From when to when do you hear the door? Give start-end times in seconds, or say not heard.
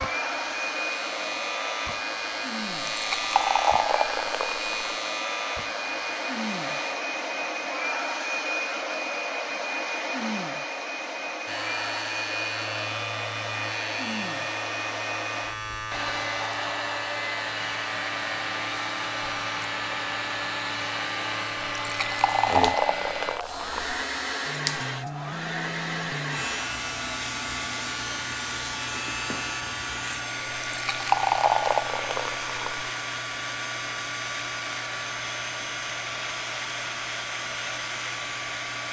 not heard.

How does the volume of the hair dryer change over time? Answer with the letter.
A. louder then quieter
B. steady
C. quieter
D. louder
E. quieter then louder
B.